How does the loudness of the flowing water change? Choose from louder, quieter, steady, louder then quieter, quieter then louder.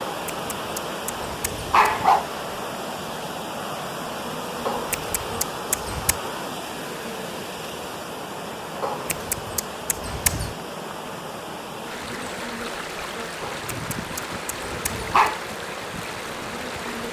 steady.